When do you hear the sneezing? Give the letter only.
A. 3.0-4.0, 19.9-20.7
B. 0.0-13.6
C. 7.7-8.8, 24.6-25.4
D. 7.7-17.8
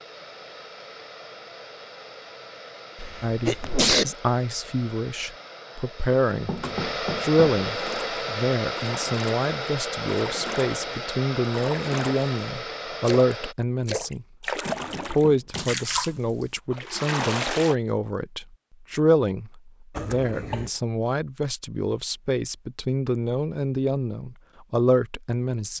A.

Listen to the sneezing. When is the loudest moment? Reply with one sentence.
The volume of the sneezing peaks at 4 seconds.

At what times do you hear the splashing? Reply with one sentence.
The splashing can be heard from 7.7 to 17.8 s.